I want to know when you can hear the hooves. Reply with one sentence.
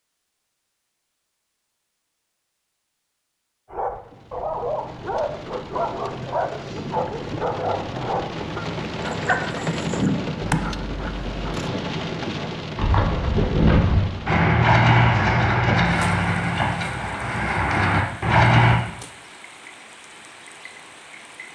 The hooves can be heard from 12.8 to 18.8 s.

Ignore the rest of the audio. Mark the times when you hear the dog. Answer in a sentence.
The dog can be heard from 3.7 to 11.3 s.